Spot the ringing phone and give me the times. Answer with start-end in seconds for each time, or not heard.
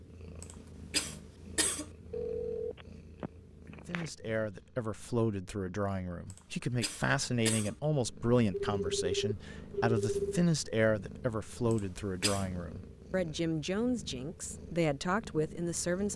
2.1-4.1, 8.5-10.4.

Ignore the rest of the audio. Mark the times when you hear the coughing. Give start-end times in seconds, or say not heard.
0.4-1.9, 6.3-7.8, 11.7-12.4.